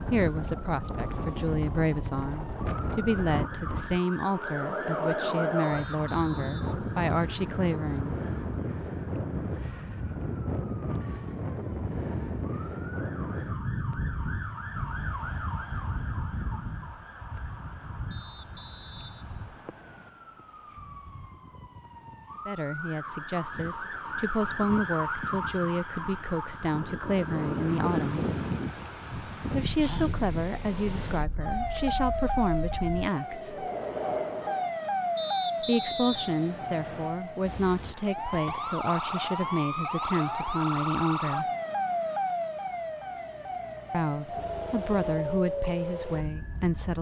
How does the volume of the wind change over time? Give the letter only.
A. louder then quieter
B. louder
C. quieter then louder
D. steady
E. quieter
C.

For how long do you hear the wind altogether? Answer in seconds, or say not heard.
35 s.